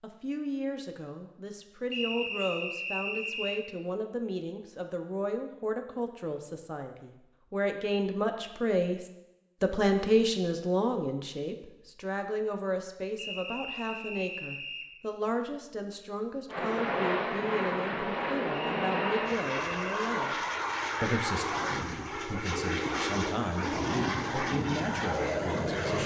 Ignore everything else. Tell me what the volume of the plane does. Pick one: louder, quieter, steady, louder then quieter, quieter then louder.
steady.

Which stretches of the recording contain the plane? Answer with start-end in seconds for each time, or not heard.
16.5-26.0.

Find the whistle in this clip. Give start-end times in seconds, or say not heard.
1.9-3.6, 13.2-14.9, 18.5-20.1.